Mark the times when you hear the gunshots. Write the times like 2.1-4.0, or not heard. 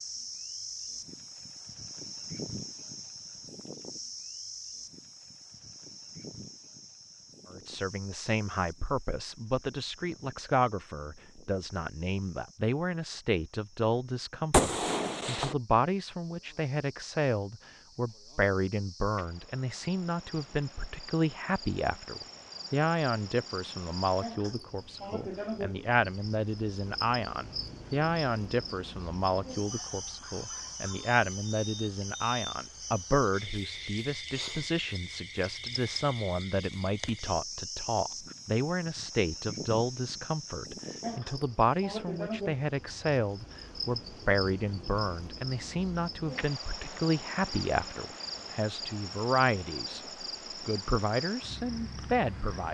14.5-15.6.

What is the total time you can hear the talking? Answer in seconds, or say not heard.
45 s.